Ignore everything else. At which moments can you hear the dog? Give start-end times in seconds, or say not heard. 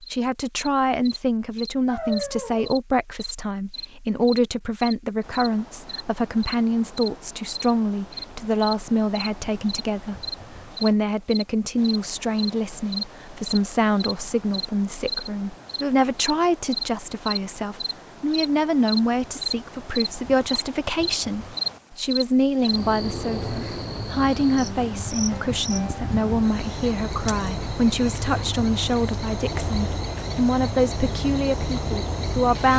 1.9-2.8.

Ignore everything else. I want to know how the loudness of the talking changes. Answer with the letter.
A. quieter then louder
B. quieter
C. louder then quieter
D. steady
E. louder
D.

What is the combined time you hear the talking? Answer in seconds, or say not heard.
33 s.